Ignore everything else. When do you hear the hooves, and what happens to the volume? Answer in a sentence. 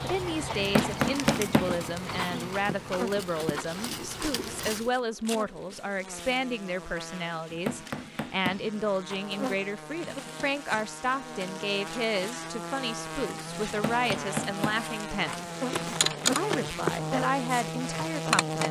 You can hear the hooves from 0.0 to 4.9 s, at a steady volume.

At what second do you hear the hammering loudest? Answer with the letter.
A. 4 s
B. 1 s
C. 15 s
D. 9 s
B.